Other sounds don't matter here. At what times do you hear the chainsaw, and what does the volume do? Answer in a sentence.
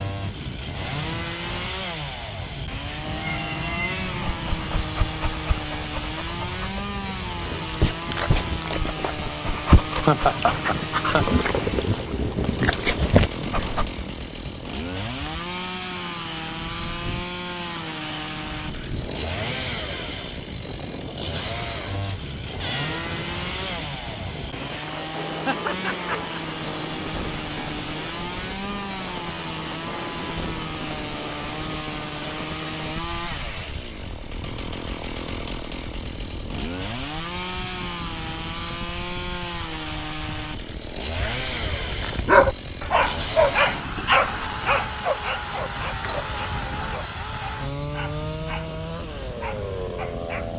The chainsaw can be heard from 0.0 to 50.5 s, at a steady volume.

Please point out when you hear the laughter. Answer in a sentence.
The laughter can be heard from 10.1 to 11.3 s and from 25.4 to 26.4 s.